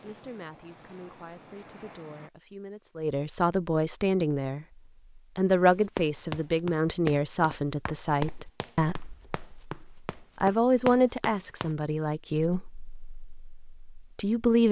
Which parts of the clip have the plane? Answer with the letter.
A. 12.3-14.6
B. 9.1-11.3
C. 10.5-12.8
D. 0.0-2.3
D.